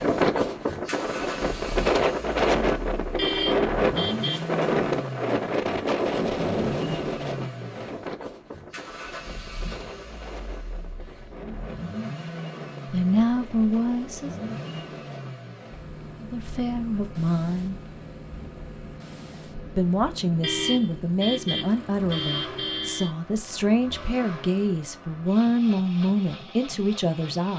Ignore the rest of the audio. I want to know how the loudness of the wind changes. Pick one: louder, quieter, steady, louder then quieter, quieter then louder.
quieter.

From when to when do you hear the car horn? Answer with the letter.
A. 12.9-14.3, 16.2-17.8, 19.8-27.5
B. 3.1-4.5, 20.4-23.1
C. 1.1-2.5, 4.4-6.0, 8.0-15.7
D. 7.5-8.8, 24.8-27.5
B.